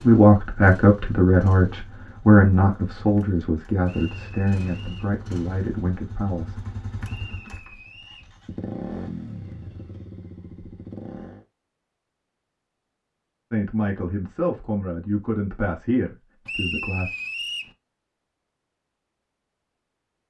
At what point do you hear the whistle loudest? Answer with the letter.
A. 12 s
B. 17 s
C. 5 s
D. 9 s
B.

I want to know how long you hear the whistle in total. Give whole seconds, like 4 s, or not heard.
4 s.